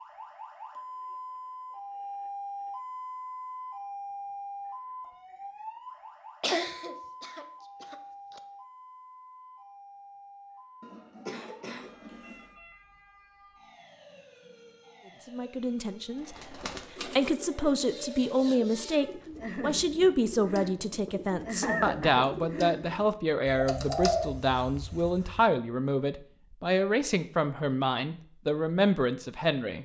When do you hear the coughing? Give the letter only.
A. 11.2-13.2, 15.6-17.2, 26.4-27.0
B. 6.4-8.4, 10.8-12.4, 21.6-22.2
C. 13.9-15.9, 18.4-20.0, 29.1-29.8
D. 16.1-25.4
B.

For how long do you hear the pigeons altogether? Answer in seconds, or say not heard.
9 s.